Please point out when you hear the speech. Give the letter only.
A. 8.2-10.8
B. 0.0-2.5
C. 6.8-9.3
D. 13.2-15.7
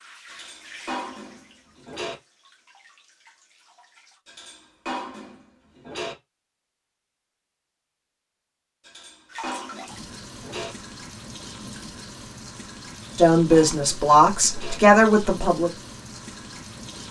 D.